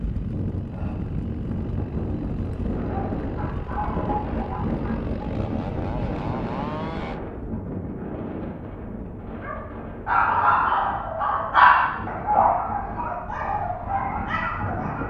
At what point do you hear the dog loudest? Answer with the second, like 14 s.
12 s.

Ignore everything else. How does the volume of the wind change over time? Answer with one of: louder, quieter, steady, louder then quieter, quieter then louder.
quieter.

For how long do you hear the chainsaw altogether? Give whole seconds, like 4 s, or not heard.
7 s.